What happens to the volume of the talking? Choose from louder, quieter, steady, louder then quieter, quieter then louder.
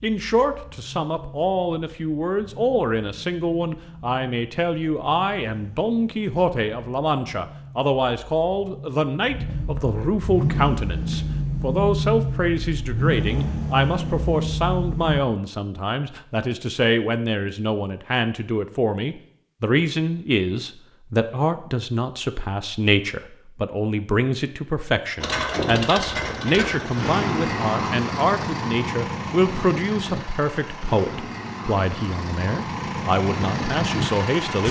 steady.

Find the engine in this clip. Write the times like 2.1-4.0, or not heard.
0.1-15.2, 25.2-34.6.